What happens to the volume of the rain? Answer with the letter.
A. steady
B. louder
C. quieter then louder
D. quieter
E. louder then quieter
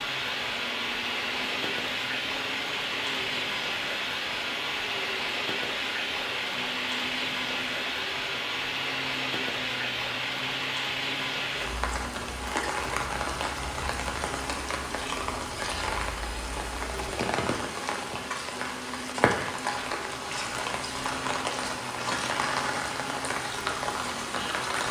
A.